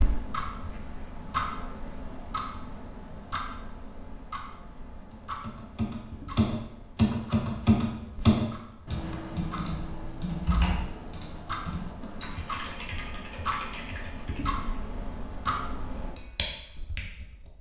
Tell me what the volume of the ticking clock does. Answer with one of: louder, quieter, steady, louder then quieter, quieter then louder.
quieter then louder.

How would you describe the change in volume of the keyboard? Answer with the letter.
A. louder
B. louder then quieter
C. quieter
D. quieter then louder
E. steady
C.